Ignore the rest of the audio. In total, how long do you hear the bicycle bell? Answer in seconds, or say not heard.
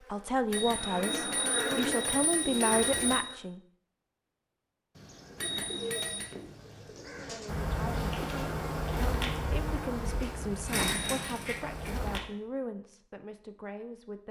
4 s.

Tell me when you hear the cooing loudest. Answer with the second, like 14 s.
11 s.